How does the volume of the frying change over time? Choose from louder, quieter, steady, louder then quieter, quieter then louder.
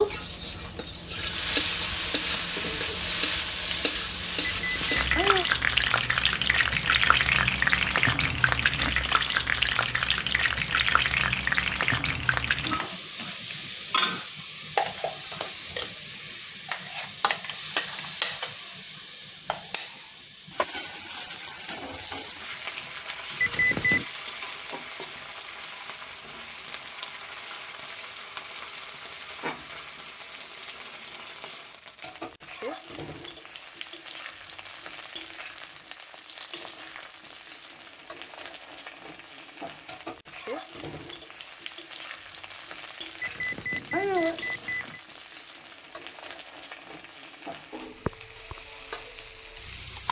quieter.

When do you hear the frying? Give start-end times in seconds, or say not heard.
0.0-50.0.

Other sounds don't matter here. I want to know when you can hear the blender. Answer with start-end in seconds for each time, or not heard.
not heard.